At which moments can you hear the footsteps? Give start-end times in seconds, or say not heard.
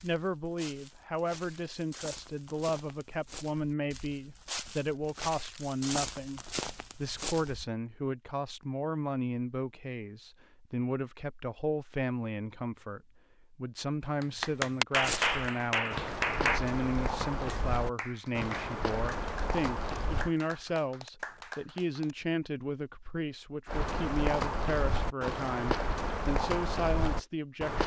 0.0-7.7, 15.0-20.3, 23.6-27.8.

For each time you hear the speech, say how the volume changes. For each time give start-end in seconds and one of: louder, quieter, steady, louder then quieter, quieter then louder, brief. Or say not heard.
0.0-27.8 steady.